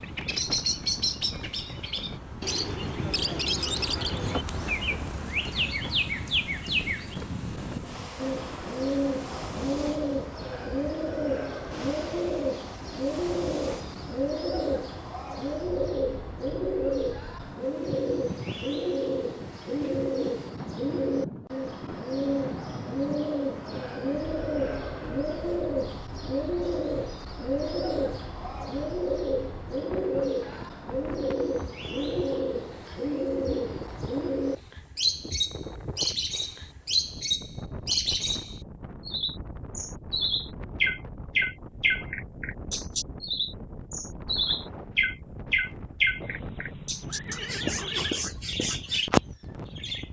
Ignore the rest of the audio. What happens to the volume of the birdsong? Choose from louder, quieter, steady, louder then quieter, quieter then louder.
steady.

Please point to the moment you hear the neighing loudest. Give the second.
48 s.